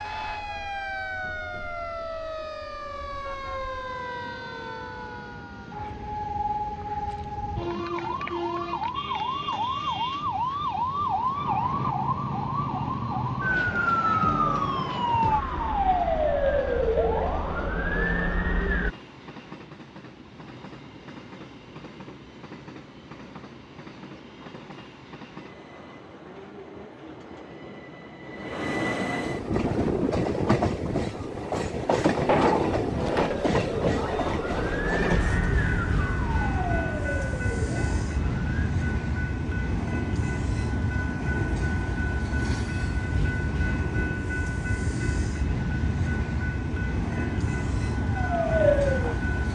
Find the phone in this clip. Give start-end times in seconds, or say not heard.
32.1-33.4.